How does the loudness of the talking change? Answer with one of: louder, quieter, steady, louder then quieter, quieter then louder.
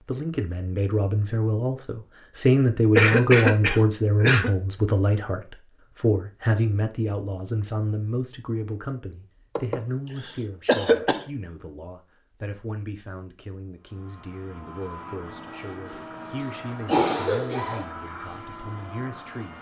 quieter.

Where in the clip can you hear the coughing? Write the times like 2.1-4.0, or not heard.
3.0-4.5, 9.6-11.2, 15.9-17.9.